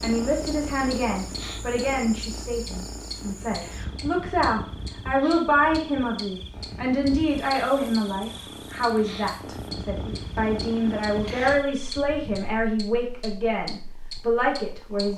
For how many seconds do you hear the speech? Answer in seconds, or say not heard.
15 s.